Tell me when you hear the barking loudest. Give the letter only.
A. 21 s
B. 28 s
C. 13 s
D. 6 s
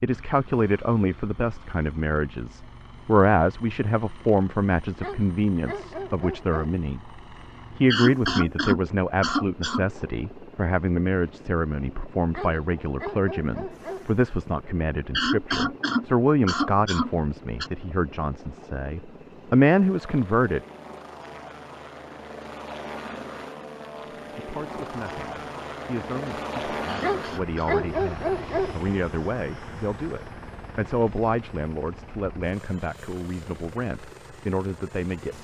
B.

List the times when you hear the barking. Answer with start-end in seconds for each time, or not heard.
5.0-6.8, 12.3-14.1, 27.0-28.8.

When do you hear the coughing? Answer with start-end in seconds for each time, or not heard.
7.9-9.8, 15.1-17.7, 26.9-27.8.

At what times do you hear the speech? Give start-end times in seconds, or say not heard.
0.0-20.6, 24.4-35.3.